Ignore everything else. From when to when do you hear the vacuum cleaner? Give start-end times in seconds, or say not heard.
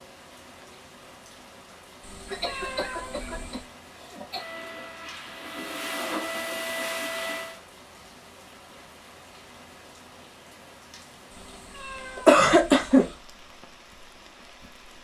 4.3-7.6.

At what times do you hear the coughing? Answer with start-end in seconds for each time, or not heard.
2.2-4.5, 12.2-13.1.